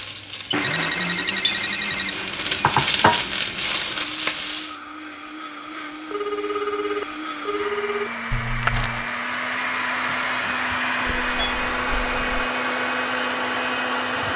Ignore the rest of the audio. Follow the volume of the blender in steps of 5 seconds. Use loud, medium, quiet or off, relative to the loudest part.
medium, medium, loud.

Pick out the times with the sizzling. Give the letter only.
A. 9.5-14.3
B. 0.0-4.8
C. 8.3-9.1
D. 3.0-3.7
B.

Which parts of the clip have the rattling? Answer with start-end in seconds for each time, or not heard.
8.3-9.1.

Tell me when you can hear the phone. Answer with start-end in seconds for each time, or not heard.
0.6-2.5, 6.1-8.1, 11.1-12.5.